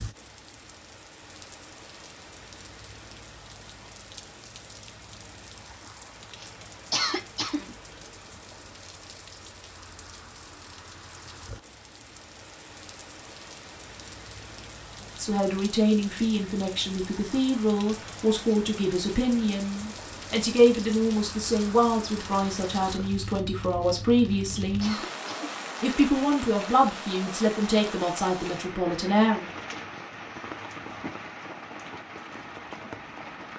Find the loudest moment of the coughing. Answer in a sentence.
The loudest moment of the coughing is at 7 seconds.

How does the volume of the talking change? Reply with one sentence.
The volume of the talking stays about the same.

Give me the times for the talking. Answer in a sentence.
You can hear the talking from 15.2 to 24.9 s and from 25.8 to 29.5 s.